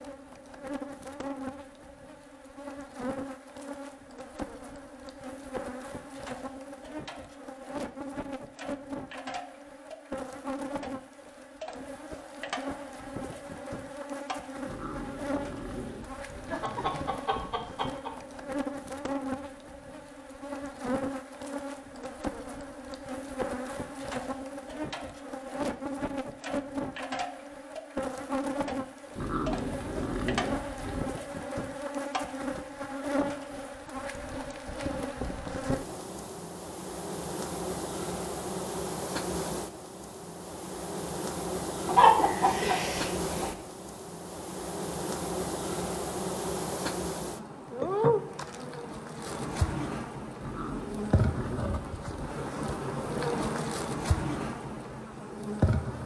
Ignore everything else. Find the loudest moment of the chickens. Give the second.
42 s.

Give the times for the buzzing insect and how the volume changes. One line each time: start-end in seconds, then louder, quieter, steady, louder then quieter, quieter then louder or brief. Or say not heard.
0.0-56.0 louder.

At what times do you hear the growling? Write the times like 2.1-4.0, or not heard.
14.7-16.6, 29.1-31.1, 50.4-52.4.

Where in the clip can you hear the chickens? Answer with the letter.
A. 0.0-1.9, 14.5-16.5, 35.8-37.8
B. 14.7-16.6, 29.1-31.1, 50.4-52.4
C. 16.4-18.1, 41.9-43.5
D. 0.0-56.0
C.